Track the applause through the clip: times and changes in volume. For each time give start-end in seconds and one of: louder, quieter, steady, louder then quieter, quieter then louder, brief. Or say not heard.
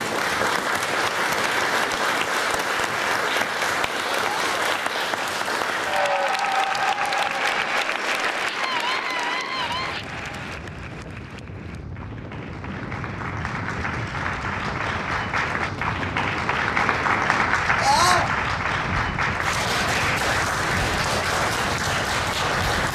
0.0-22.9 quieter then louder.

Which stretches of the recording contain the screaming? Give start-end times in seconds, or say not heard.
4.2-4.7, 8.4-10.1, 17.8-18.3.